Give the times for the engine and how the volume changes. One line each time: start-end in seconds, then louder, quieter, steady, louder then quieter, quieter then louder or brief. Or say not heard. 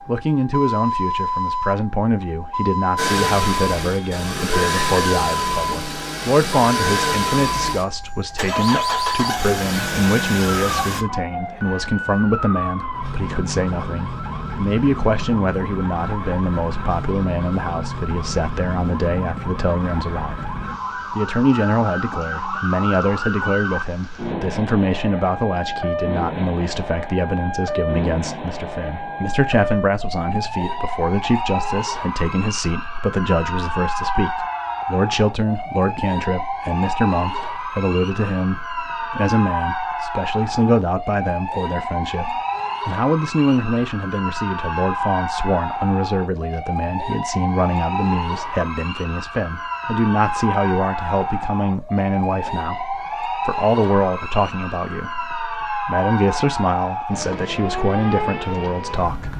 3.0-11.1 steady.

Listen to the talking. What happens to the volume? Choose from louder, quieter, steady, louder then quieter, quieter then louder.
steady.